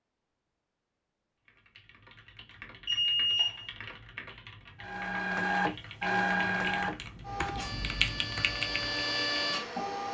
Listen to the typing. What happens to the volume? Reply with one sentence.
The volume of the typing goes up.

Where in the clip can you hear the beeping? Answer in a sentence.
The beeping can be heard from 2.9 to 3.6 s.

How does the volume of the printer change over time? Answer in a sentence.
The loudness of the printer goes down, then up.